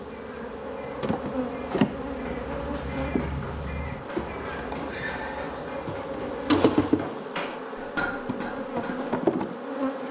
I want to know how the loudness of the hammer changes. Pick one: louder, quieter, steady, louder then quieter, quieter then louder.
louder.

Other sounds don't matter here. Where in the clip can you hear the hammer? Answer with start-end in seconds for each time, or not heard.
2.1-9.2.